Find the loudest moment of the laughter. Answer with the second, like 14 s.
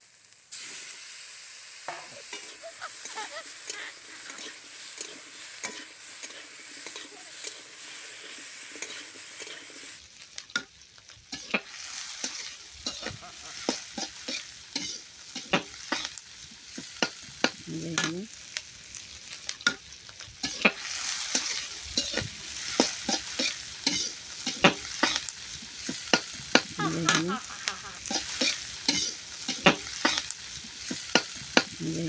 27 s.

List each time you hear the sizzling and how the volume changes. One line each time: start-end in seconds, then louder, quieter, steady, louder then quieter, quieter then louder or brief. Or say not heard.
0.0-32.0 louder.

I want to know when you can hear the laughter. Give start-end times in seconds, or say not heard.
1.9-4.4, 12.8-13.6, 26.8-28.0.